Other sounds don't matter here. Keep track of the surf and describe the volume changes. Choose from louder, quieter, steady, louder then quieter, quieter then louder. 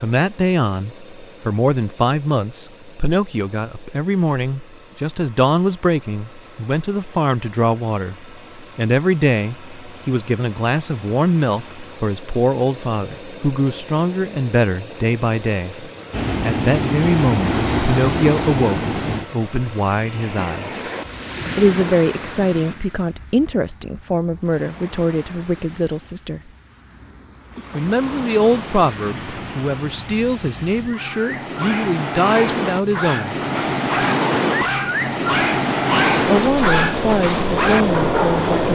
quieter then louder.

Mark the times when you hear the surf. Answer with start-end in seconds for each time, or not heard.
16.1-38.7.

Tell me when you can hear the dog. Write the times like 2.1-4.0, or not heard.
30.9-38.5.